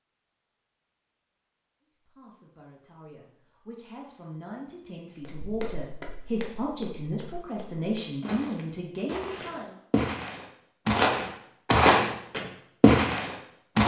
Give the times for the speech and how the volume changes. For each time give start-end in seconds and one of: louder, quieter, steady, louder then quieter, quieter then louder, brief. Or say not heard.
2.0-9.8 louder.